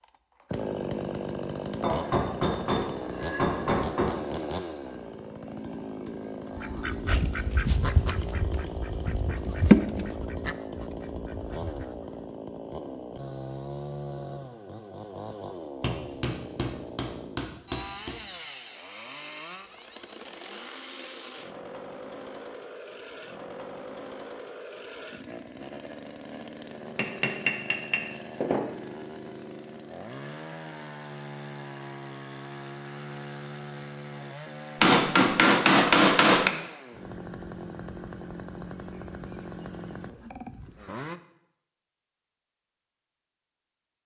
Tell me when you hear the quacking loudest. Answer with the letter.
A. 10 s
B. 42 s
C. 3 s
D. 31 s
A.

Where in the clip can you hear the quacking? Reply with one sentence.
You can hear the quacking from 6.5 to 12.2 s.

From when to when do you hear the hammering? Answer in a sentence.
The hammering can be heard from 1.8 to 4.2 s, from 15.8 to 18.1 s, from 26.9 to 28.6 s and from 34.8 to 36.5 s.